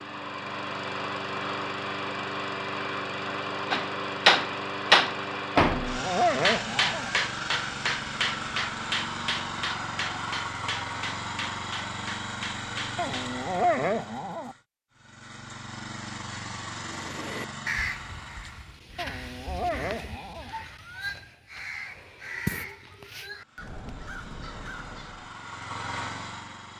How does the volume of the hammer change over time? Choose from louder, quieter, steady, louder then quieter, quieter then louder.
quieter.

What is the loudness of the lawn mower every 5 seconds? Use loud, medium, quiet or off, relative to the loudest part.
loud, loud, loud, medium, quiet, medium.